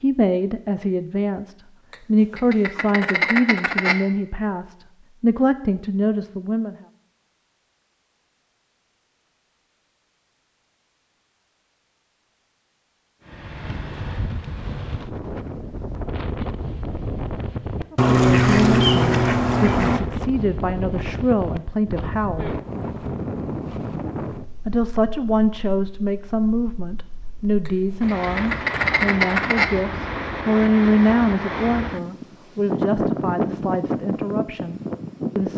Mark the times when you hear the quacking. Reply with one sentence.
You can hear the quacking from 1.9 to 4.0 s, from 17.9 to 20.0 s and from 27.6 to 29.6 s.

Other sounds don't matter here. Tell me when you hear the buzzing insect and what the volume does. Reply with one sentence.
You can't hear the buzzing insect here.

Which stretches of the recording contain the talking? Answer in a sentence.
The talking can be heard from 0.0 to 6.8 s, from 17.9 to 22.5 s and from 24.6 to 35.5 s.